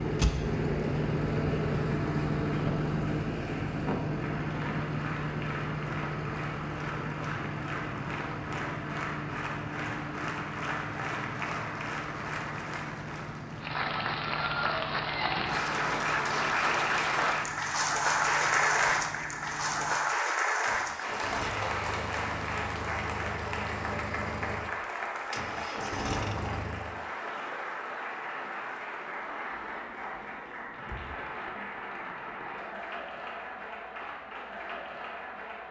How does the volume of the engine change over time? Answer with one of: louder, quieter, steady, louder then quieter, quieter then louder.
quieter then louder.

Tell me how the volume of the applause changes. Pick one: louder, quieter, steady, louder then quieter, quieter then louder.
louder then quieter.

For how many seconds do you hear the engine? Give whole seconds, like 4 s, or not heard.
27 s.